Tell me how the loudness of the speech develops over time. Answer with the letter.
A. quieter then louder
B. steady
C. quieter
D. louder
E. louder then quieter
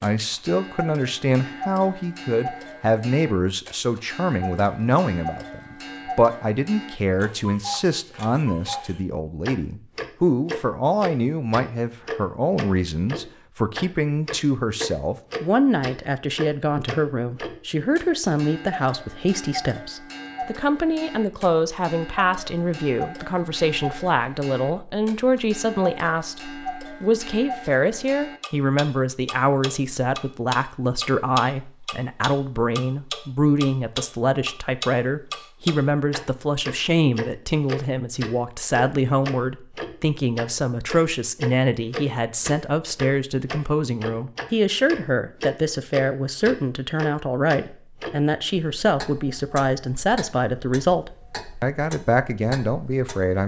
B.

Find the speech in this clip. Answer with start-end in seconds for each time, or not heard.
0.0-53.4.